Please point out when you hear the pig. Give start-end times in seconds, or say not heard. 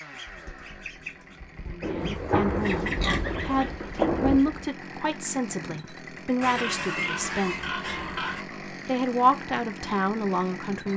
2.0-3.4, 6.4-8.4.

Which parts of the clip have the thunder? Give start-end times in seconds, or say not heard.
1.8-4.5.